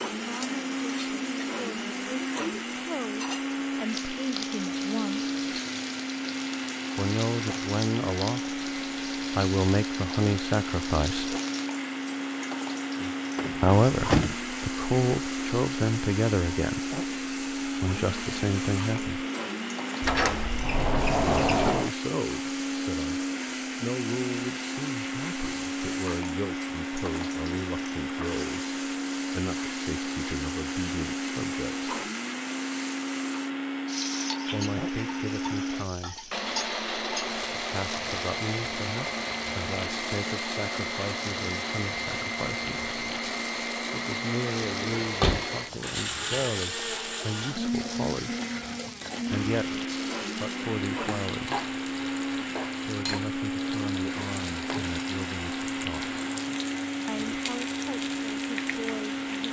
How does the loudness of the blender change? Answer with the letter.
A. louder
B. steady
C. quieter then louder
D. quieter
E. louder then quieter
B.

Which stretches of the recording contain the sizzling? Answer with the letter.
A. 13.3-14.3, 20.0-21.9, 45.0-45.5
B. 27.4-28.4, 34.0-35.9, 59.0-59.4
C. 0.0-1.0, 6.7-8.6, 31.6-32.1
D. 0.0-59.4
D.